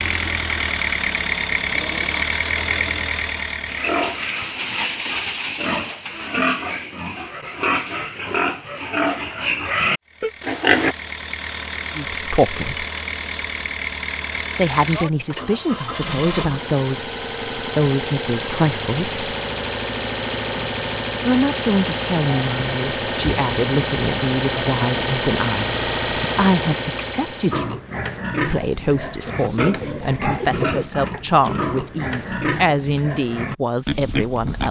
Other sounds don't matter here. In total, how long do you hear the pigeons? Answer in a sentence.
The pigeons can be heard for 3 seconds in total.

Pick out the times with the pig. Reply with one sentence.
The pig can be heard from 3.6 to 10.9 s and from 27.5 to 34.6 s.